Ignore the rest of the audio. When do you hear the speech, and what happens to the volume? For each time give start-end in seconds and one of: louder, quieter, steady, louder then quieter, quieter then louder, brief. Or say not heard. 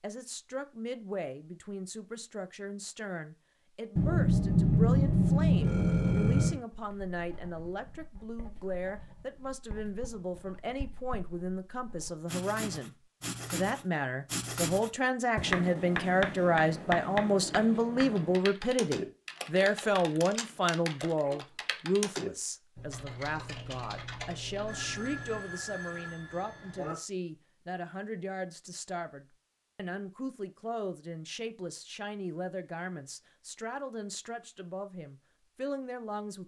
0.0-36.4 louder then quieter.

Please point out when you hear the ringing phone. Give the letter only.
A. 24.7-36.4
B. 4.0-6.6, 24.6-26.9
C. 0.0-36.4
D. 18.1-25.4
B.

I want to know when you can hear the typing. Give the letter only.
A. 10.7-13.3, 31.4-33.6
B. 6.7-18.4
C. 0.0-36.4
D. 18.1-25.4
D.